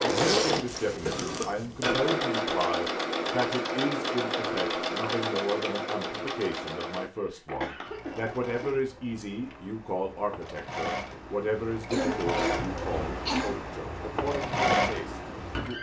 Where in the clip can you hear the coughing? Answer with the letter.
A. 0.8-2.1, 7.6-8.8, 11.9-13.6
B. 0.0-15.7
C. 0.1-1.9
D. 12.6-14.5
A.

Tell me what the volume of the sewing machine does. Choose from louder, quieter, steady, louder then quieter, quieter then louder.
quieter then louder.